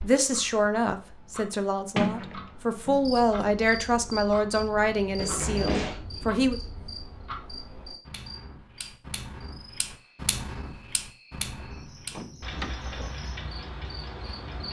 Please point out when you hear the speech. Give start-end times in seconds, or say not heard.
0.0-6.6.